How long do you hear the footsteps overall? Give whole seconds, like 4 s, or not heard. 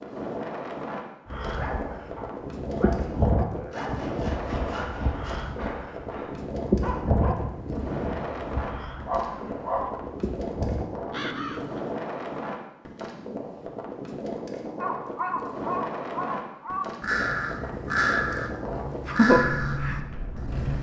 not heard.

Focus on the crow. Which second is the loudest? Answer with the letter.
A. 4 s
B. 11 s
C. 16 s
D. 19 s
D.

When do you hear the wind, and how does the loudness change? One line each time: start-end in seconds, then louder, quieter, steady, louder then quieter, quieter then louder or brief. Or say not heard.
0.0-20.7 steady.